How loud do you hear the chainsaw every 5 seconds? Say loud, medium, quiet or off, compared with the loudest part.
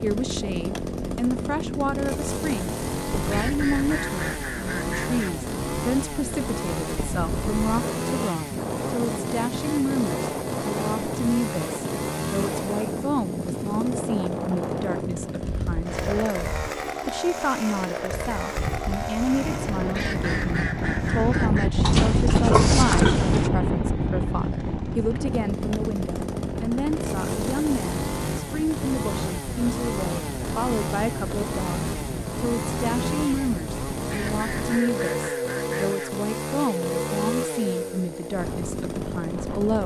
loud, loud, loud, loud, medium, loud, loud, loud.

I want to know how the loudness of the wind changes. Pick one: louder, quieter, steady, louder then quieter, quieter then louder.
louder then quieter.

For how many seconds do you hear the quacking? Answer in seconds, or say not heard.
6 s.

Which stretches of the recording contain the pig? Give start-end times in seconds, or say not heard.
21.8-23.5.